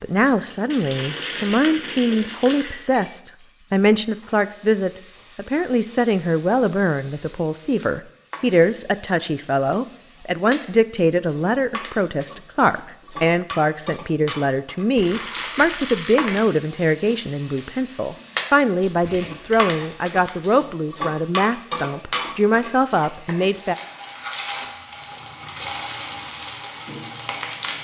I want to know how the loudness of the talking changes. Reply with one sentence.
The loudness of the talking stays about the same.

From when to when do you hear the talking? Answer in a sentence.
You can hear the talking from 0.0 to 23.8 s.